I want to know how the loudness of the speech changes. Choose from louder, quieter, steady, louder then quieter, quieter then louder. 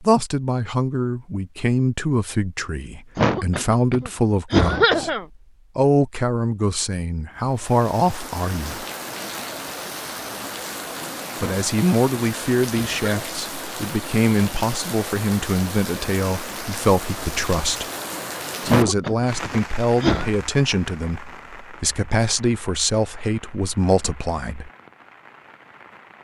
steady.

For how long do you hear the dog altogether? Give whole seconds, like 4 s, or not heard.
not heard.